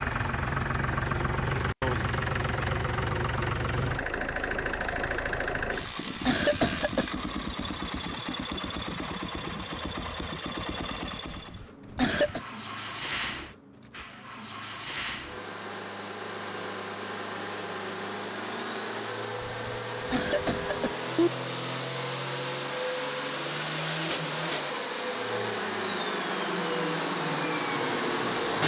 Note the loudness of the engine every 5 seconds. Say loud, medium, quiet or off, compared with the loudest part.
loud, loud, medium, medium, loud, loud.